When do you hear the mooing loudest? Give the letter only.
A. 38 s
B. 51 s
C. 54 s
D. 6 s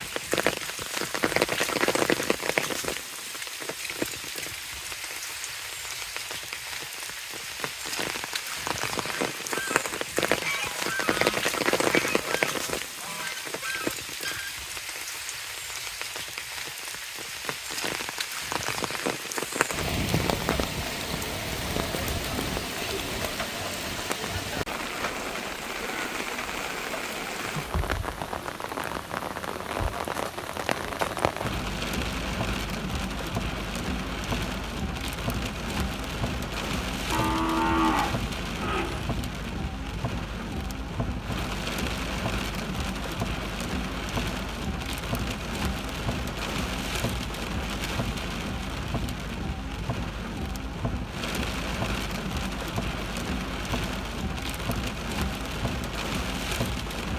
A.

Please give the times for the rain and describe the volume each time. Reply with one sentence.
The rain can be heard from 0.0 to 57.1 s, at a steady volume.